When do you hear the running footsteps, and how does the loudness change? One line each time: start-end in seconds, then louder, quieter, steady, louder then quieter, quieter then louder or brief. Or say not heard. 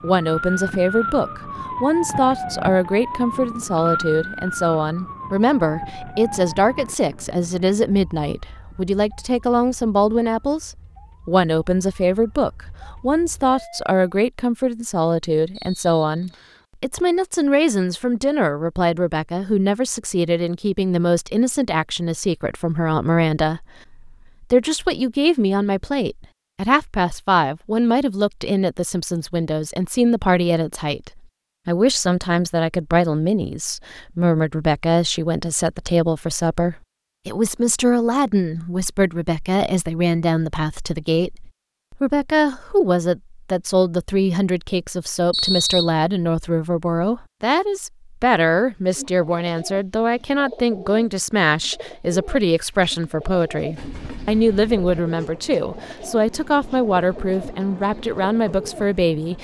not heard.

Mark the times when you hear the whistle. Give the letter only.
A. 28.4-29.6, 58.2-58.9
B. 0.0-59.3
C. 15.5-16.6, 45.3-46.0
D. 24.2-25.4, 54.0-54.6
C.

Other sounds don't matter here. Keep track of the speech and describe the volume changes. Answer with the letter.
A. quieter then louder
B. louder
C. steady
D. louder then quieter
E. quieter
C.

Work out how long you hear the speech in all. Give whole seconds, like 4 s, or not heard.
59 s.